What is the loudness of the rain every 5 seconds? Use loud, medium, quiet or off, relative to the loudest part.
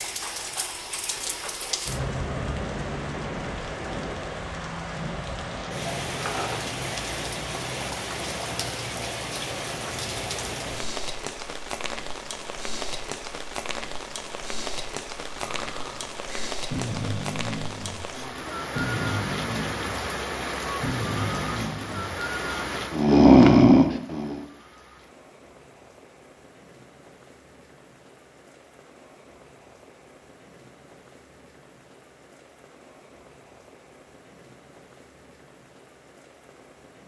loud, loud, loud, loud, loud, quiet, quiet, quiet.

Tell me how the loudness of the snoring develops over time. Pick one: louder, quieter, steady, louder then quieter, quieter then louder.
louder.